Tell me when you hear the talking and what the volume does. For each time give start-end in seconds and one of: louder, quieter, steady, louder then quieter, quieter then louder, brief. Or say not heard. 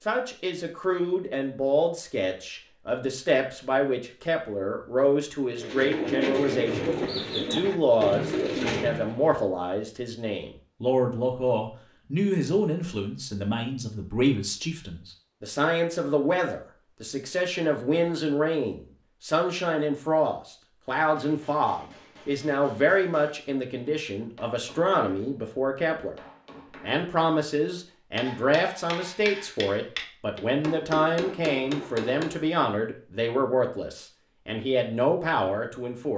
0.1-26.1 steady
26.8-36.1 steady.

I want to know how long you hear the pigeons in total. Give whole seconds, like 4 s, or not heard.
4 s.